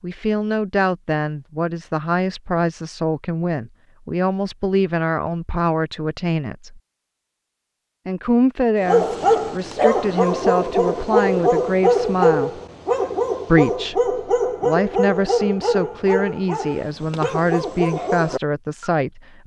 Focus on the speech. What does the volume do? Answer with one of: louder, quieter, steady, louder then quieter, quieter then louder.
steady.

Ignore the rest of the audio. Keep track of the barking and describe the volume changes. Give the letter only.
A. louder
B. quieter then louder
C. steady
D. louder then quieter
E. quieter
E.